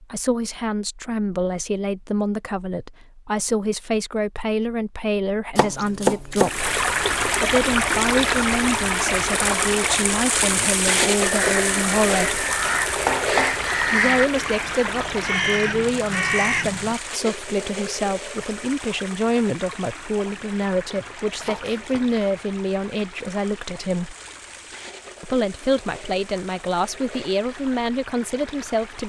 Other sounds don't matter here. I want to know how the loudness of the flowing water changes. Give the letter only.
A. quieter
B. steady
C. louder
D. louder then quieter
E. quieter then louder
A.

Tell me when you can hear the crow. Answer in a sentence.
You can hear the crow from 11.2 to 16.9 s.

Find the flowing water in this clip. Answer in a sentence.
The flowing water can be heard from 6.4 to 29.0 s.